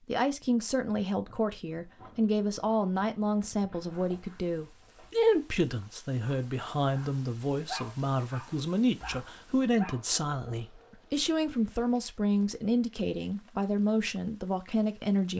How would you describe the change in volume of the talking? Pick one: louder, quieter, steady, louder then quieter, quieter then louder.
steady.